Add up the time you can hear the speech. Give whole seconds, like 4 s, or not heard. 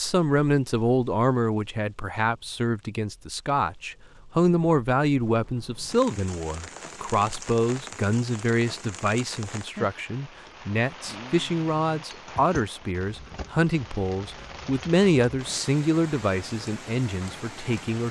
18 s.